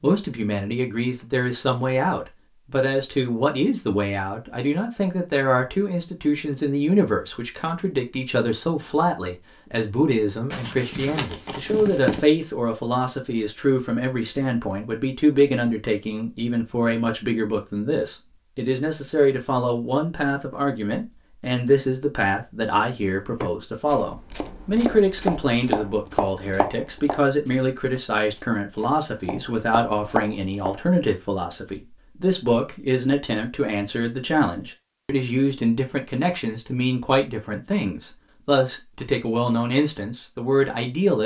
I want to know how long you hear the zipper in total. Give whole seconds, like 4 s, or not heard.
2 s.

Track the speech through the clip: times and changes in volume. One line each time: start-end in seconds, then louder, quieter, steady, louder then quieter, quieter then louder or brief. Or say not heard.
0.0-41.2 steady.